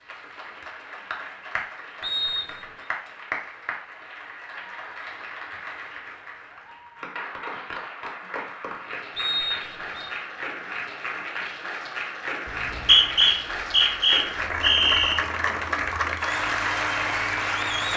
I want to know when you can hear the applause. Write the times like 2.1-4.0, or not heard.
0.0-17.9.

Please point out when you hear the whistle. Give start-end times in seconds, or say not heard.
2.0-2.9, 9.2-10.1, 12.4-15.2.